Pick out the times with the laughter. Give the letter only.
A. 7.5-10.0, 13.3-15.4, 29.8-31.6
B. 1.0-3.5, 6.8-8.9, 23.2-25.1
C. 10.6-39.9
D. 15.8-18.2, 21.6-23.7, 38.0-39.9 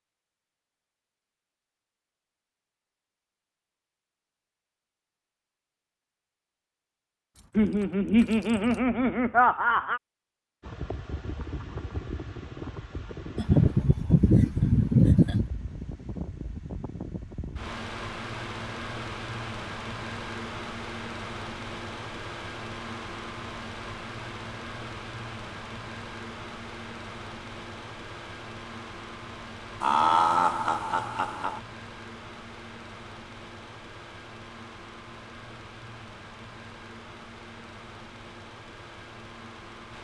A.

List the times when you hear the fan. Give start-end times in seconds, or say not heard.
10.6-39.9.